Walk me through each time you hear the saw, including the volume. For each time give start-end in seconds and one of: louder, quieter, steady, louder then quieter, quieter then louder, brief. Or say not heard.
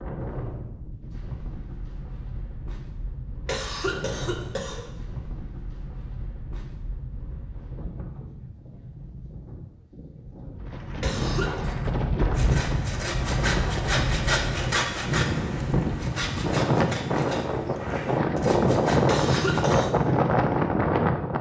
11.6-19.8 louder then quieter.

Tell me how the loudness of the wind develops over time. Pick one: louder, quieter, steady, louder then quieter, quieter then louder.
louder.